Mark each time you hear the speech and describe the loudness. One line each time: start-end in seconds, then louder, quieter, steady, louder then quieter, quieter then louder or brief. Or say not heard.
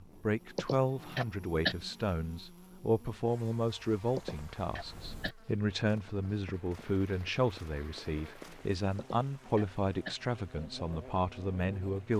0.0-12.1 steady.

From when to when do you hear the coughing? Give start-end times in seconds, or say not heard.
0.6-1.8, 4.2-5.3, 8.9-10.2.